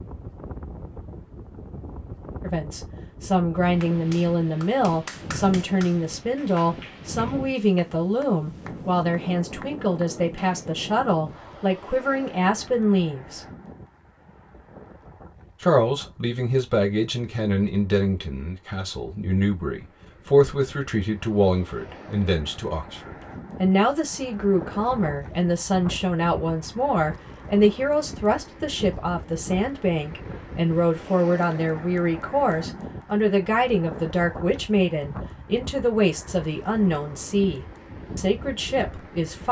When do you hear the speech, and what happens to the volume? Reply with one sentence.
You can hear the speech from 2.4 to 13.4 s, at a steady volume; and from 15.6 to 39.4 s, at a steady volume.